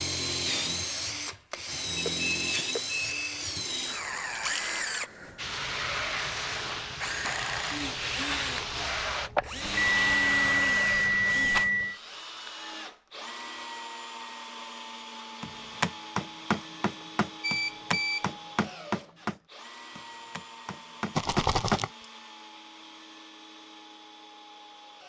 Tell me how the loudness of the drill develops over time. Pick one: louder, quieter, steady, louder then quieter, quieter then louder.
quieter.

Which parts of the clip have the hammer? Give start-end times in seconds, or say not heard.
15.4-21.9.